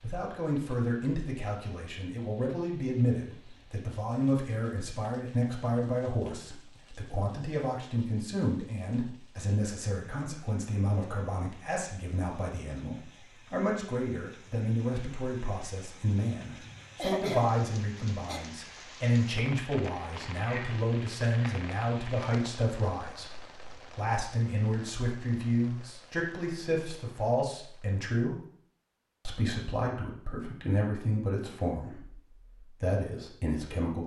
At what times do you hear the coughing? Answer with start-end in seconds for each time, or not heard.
16.9-18.4.